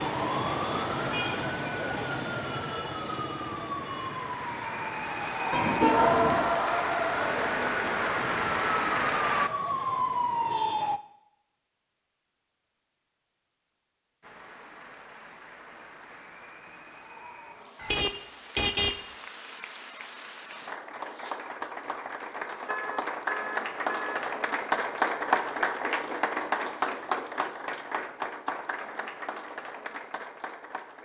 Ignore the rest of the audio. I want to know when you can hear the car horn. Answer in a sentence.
The car horn can be heard from 5.5 to 6.5 s, from 17.8 to 19.0 s and from 22.6 to 24.2 s.